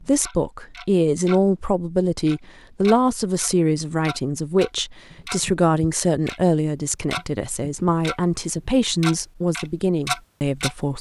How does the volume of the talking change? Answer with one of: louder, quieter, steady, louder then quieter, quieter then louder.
steady.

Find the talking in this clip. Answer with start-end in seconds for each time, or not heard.
0.0-10.9.